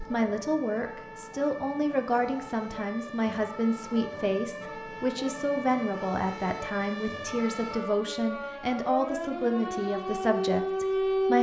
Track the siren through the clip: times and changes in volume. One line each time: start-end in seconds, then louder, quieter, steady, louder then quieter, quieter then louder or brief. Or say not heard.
0.0-11.3 louder.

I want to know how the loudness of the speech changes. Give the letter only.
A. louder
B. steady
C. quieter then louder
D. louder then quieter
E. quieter
B.